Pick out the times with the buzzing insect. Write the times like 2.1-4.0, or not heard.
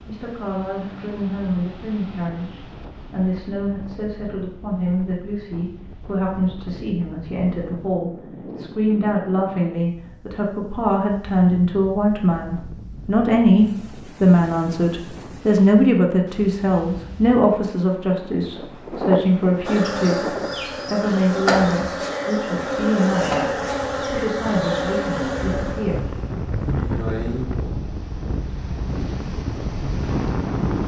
19.6-27.4.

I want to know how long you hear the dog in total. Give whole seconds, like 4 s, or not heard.
not heard.